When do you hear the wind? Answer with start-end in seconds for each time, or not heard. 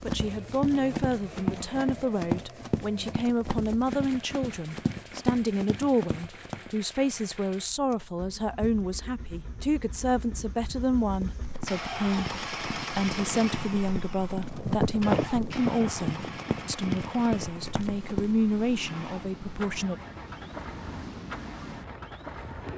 9.2-22.7.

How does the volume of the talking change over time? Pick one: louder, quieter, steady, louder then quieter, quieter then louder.
steady.